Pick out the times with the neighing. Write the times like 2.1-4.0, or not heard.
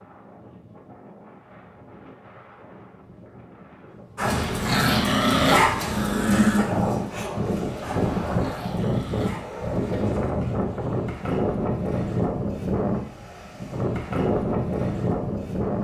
not heard.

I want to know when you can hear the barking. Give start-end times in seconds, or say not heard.
4.2-9.4.